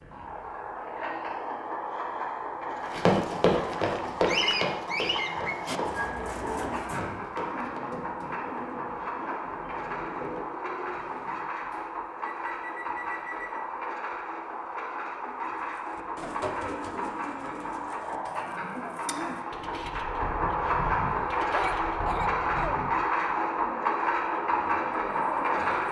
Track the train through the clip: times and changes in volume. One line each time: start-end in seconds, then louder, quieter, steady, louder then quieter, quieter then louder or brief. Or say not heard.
0.0-25.8 louder.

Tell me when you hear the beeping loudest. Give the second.
13 s.